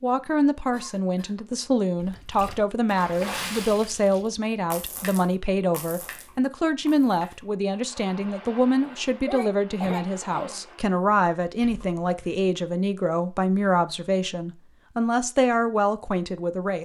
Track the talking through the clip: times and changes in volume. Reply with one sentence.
The talking can be heard from 0.0 to 16.8 s, at a steady volume.